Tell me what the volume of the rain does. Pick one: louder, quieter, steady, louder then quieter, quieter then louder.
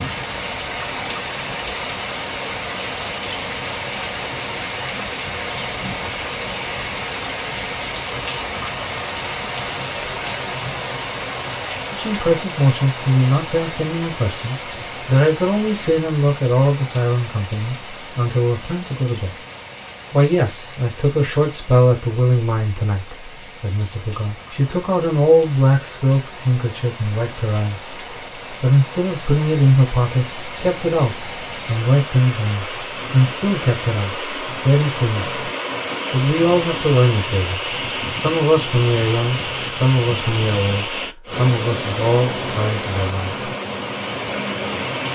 quieter then louder.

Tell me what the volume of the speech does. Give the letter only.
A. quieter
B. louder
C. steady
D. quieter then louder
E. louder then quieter
C.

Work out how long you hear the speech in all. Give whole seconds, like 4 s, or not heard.
29 s.